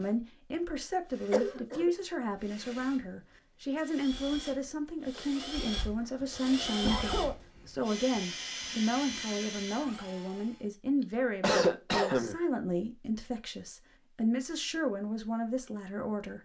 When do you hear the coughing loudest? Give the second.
12 s.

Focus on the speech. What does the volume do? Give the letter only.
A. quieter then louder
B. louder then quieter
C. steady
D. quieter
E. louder
C.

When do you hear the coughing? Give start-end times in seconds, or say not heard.
1.3-1.9, 6.0-7.3, 11.0-12.4.